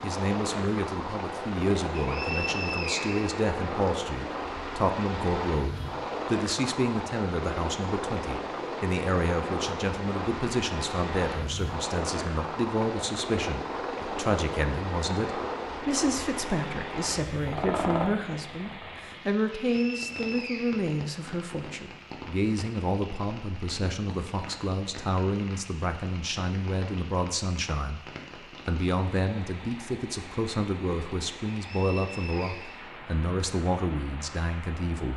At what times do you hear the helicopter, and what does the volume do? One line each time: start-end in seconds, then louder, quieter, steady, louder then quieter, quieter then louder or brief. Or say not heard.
0.0-19.1 steady.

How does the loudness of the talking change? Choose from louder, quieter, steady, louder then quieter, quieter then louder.
steady.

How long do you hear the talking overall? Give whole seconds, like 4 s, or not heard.
35 s.